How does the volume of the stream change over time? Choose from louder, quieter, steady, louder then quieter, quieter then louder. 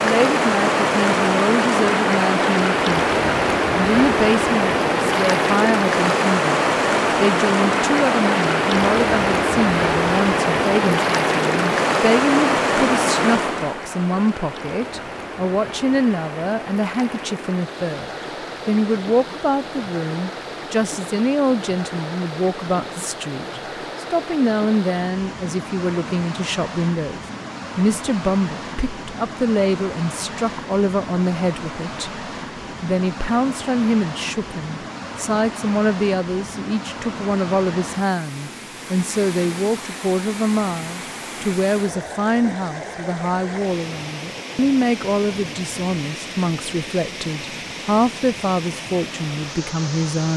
quieter.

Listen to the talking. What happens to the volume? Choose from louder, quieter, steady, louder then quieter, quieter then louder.
steady.